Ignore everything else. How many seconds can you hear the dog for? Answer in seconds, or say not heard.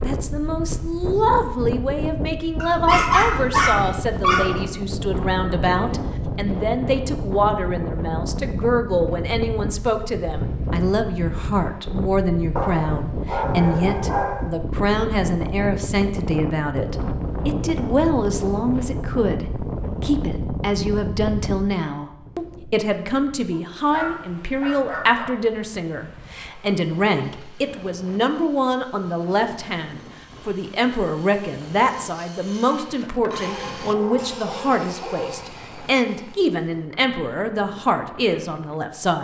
8 s.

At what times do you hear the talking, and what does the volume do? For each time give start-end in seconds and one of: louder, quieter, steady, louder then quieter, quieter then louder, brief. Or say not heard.
0.0-39.2 steady.